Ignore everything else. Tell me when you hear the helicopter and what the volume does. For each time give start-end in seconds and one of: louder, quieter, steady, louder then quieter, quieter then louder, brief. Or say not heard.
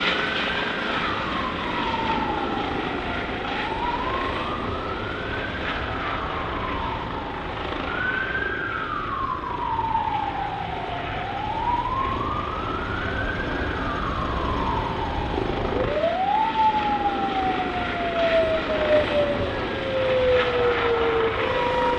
0.0-21.9 quieter then louder.